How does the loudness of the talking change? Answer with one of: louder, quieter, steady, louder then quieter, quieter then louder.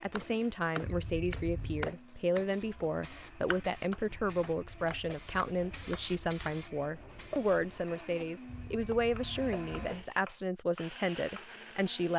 steady.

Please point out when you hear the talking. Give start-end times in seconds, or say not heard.
0.0-12.1.